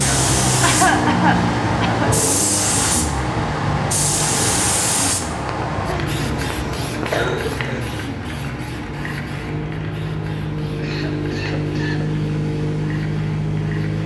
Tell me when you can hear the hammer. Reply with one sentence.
You can't hear the hammer here.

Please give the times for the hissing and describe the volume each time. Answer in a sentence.
You can hear the hissing from 0.0 to 14.0 s, getting quieter.